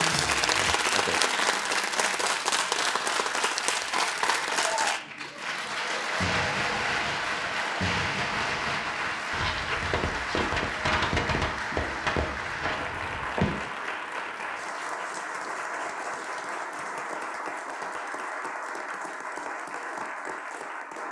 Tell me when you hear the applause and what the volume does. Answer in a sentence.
The applause can be heard from 0.0 to 21.0 s, getting quieter.